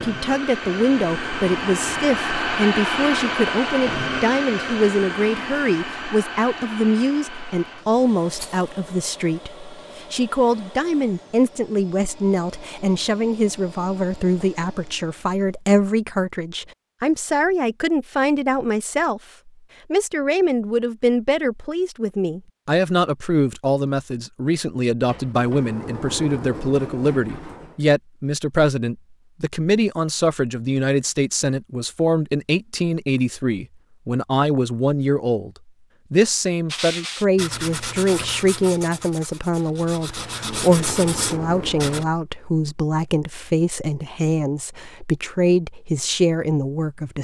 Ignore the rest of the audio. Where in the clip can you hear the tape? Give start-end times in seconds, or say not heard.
not heard.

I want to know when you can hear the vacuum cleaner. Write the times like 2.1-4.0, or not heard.
0.0-15.4.